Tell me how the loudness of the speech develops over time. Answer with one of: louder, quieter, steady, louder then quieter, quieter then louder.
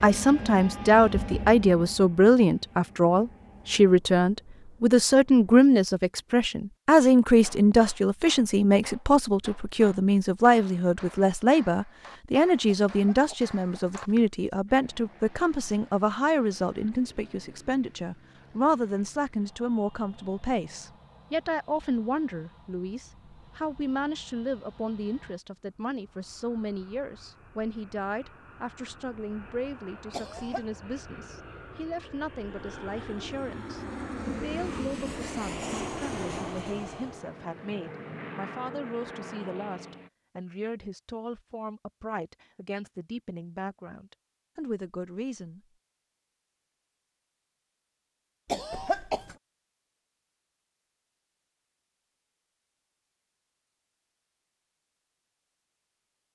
quieter.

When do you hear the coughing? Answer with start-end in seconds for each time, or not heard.
12.7-14.2, 30.1-30.6, 48.5-49.4.